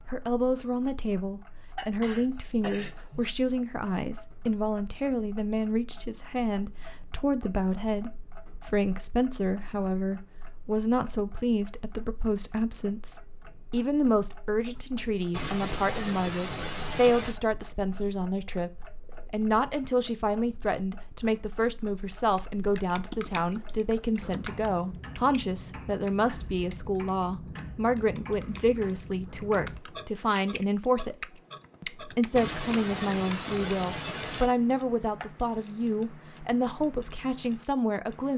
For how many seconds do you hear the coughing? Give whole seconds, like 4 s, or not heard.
6 s.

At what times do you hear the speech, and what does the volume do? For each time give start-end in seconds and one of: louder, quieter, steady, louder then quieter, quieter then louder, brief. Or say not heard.
0.1-31.1 steady
31.8-38.3 steady.